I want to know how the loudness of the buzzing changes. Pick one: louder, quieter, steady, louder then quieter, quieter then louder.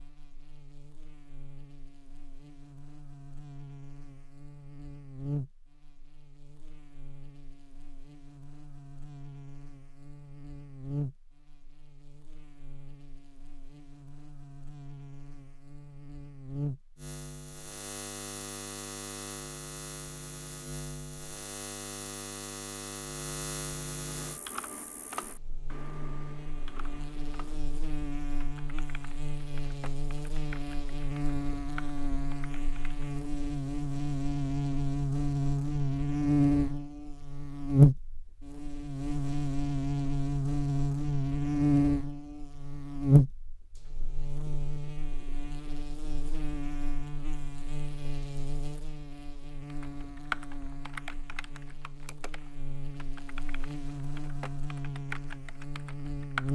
louder then quieter.